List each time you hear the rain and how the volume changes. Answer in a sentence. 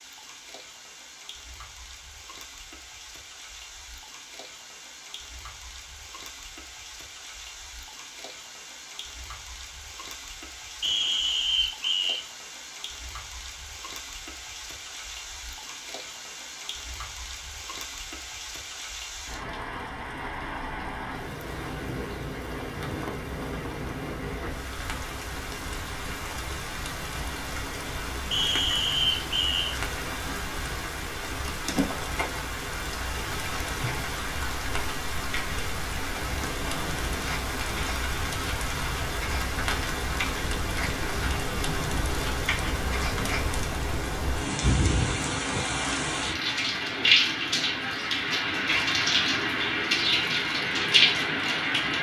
You can hear the rain from 0.0 to 51.9 s, getting louder.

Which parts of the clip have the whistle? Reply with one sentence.
The whistle can be heard from 10.8 to 12.2 s and from 28.3 to 29.6 s.